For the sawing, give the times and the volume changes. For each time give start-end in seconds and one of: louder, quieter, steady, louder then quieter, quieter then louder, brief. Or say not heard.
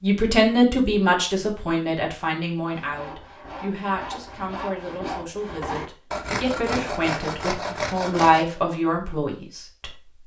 2.7-8.4 louder.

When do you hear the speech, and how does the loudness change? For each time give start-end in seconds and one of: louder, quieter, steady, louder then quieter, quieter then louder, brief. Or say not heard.
0.0-9.9 quieter then louder.